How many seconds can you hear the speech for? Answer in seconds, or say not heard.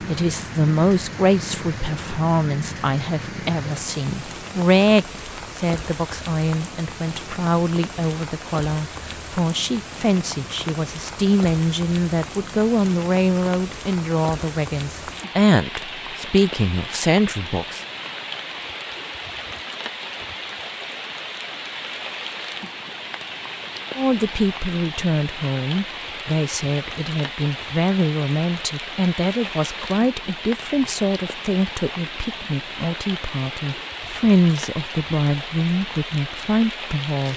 31 s.